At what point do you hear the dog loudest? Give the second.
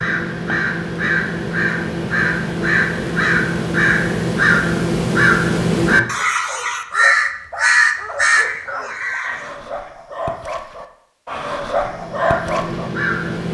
12 s.